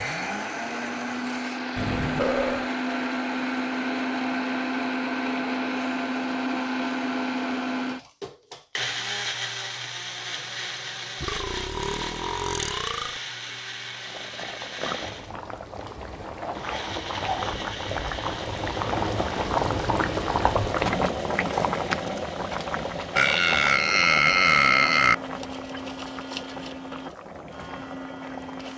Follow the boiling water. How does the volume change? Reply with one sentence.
The loudness of the boiling water goes up, then down.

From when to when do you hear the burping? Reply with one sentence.
The burping can be heard from 1.8 to 2.7 s, from 11.2 to 13.2 s and from 23.1 to 25.1 s.